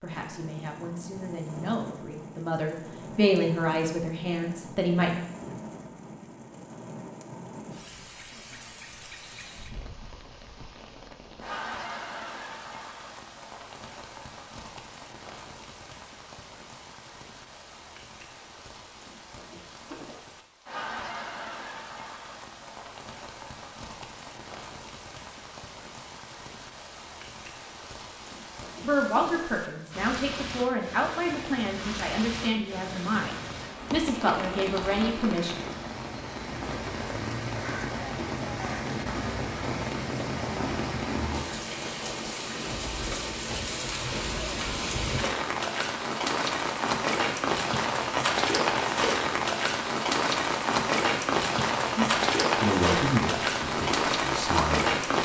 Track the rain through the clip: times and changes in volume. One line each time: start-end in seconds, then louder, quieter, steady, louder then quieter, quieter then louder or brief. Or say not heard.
0.0-55.2 louder.